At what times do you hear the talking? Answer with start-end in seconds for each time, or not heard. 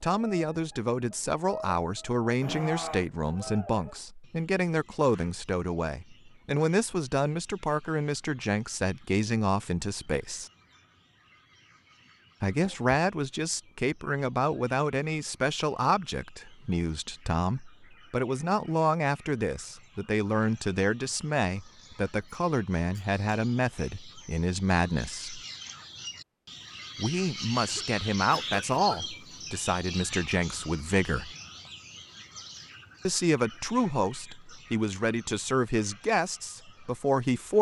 0.0-10.5, 12.4-25.4, 26.9-31.3, 33.0-37.5.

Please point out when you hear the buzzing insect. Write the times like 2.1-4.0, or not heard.
not heard.